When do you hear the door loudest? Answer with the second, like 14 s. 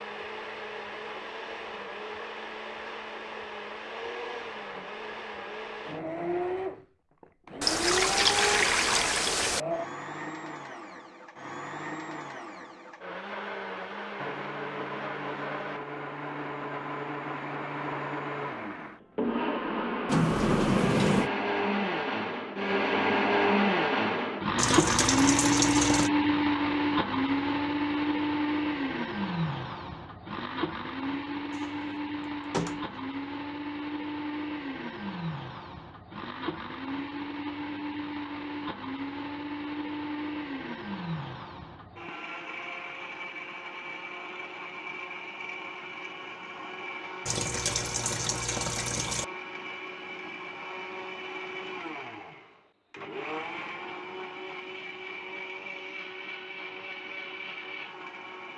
21 s.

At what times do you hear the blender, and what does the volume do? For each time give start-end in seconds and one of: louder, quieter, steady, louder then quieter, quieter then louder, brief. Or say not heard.
0.0-58.5 louder then quieter.